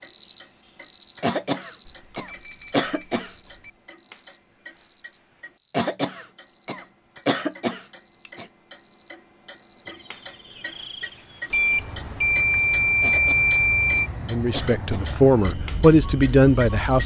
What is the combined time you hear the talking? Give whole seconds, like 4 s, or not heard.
3 s.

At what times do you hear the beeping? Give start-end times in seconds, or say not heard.
1.9-3.7, 11.5-14.1.